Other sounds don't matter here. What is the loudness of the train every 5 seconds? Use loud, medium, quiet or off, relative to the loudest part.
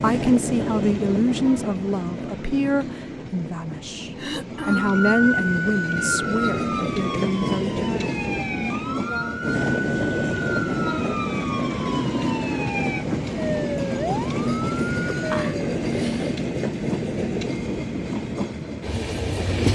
medium, loud, loud, loud.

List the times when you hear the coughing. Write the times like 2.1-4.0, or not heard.
4.2-5.0, 15.3-16.4.